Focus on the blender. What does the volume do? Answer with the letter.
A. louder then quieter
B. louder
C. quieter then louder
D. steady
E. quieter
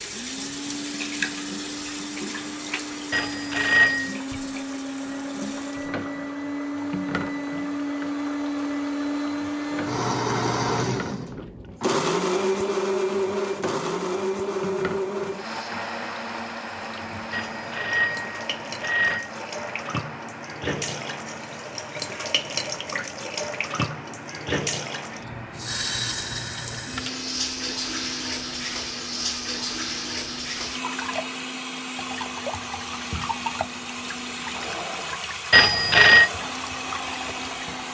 A.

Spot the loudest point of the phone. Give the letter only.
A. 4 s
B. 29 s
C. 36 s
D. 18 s
C.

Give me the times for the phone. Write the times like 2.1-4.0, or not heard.
3.1-4.2, 17.3-19.3, 35.5-36.3.